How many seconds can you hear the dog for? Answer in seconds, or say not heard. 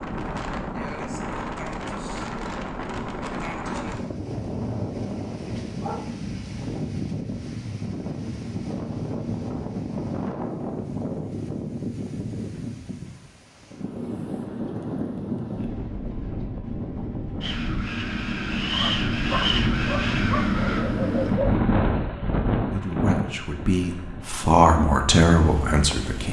4 s.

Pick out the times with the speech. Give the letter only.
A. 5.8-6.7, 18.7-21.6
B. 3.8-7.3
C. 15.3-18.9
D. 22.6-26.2
D.